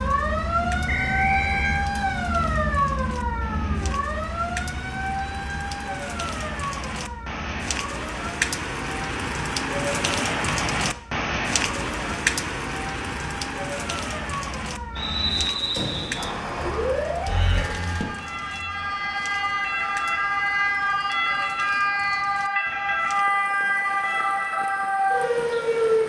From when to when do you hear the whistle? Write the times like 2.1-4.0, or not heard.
0.8-1.9, 14.9-16.3.